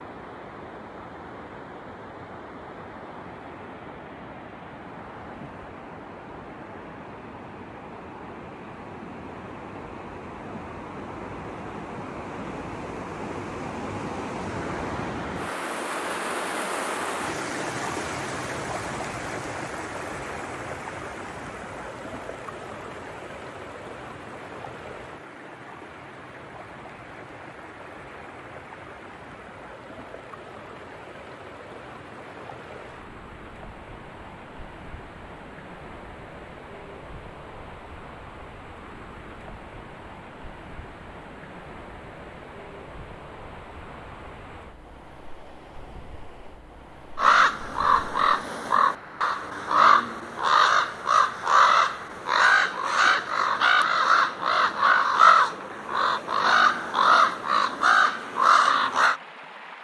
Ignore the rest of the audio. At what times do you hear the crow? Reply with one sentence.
You can hear the crow from 47.1 to 59.2 s.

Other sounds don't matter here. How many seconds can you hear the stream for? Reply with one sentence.
The stream can be heard for 60 seconds in total.